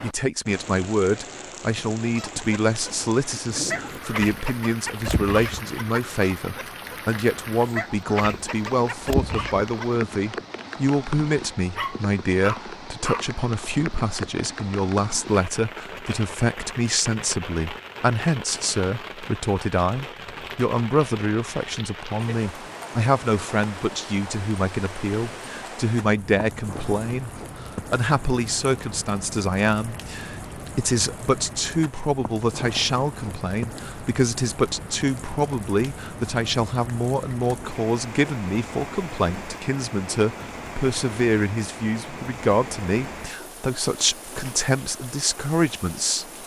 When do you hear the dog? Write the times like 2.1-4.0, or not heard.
11.8-13.3.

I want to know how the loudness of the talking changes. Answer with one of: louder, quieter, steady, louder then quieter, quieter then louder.
steady.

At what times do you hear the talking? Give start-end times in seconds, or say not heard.
0.0-46.2.